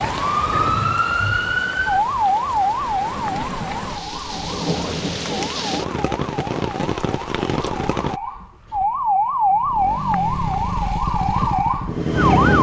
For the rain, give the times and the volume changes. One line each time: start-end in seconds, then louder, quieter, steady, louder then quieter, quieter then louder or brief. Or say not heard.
0.0-8.2 louder.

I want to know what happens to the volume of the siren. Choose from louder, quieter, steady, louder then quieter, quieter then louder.
quieter then louder.